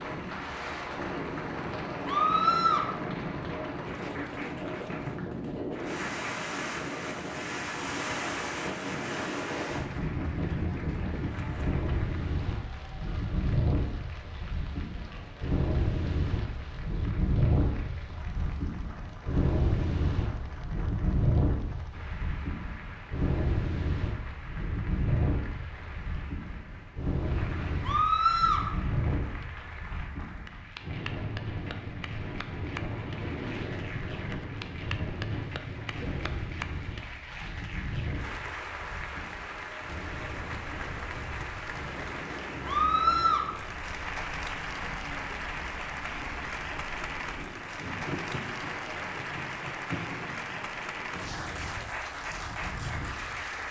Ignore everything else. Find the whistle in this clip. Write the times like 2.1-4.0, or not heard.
not heard.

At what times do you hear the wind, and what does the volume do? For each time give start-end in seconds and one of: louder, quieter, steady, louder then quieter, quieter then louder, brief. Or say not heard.
0.0-53.6 quieter.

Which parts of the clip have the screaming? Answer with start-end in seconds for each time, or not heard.
2.0-2.9, 27.8-28.6, 42.6-43.5.